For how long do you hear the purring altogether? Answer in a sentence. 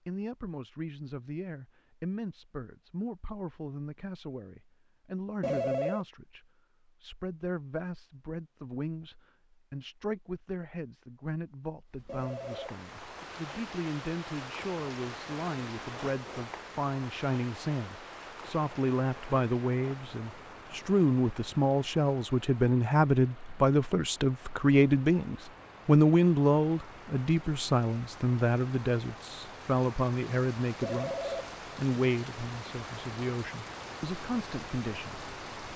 You can't hear the purring here.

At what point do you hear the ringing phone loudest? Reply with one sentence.
The loudest moment of the ringing phone is at 6 seconds.